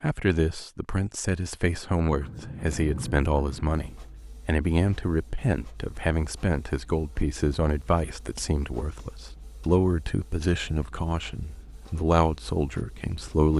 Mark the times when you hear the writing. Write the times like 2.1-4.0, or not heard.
2.1-4.0.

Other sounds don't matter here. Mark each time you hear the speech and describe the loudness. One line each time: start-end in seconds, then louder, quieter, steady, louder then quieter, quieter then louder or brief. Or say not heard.
0.0-13.5 steady.